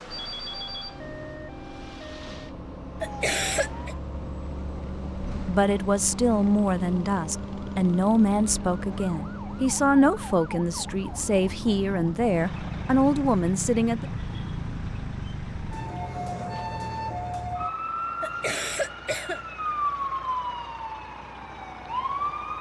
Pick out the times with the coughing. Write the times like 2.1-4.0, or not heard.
3.0-4.0, 18.2-19.4.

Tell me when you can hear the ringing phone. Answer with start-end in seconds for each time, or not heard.
not heard.